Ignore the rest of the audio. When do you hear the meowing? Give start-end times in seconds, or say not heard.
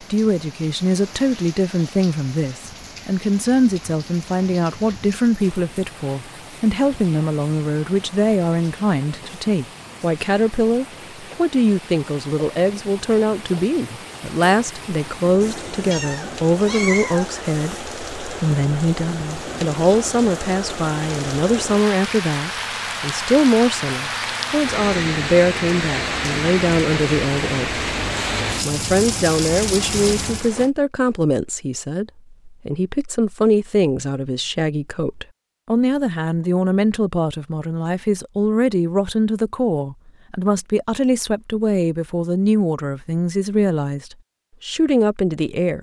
15.4-17.9.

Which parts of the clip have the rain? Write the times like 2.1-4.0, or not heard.
0.0-30.7.